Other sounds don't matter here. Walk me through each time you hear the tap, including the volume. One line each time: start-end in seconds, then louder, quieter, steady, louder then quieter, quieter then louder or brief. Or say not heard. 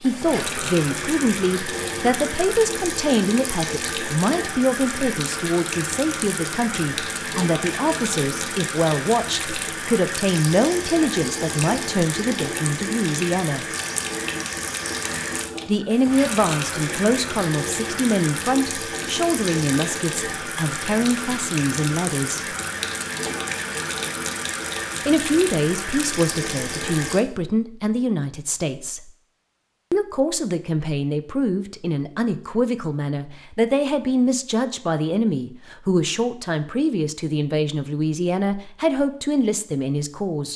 0.0-27.2 steady.